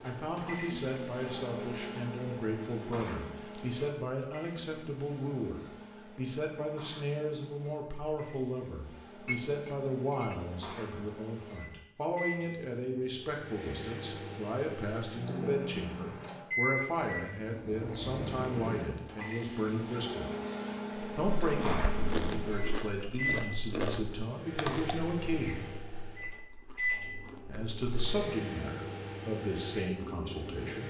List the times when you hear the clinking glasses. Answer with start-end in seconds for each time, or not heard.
9.2-10.4.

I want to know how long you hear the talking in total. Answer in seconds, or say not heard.
28 s.